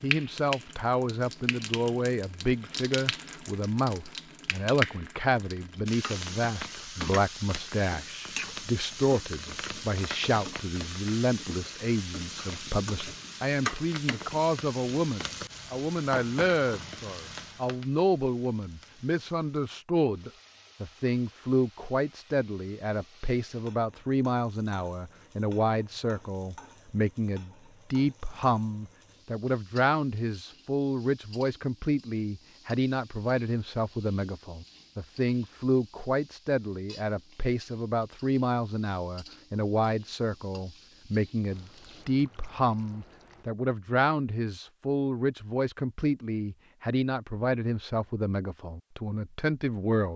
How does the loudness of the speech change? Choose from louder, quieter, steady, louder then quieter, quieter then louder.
steady.